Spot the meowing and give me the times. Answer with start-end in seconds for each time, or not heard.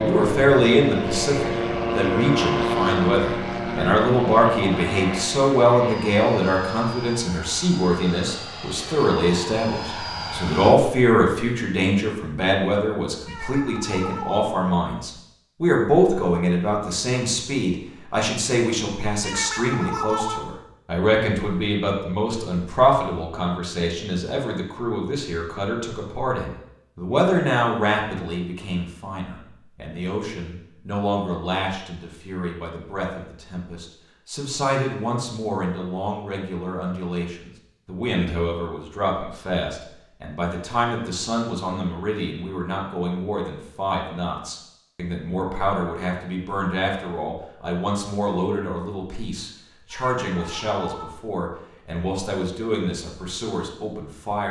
13.2-14.4, 19.2-20.4, 49.9-51.0.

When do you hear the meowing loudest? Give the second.
20 s.